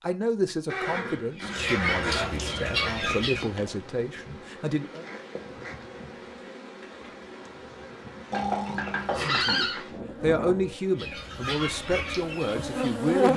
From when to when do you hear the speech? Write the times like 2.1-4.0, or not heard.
0.0-5.0, 9.1-13.3.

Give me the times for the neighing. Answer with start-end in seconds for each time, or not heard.
0.7-2.5, 8.3-9.8.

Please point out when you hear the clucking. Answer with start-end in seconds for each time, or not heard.
1.4-3.5, 10.9-13.3.